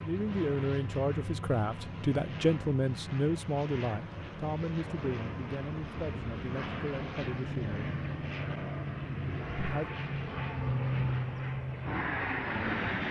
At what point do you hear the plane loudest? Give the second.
11 s.